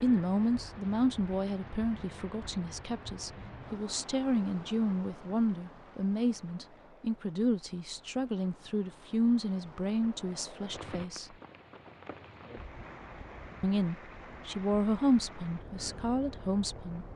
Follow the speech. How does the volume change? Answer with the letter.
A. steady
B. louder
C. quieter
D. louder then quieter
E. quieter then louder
A.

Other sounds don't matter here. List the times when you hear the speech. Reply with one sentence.
You can hear the speech from 0.0 to 11.3 s and from 13.6 to 17.1 s.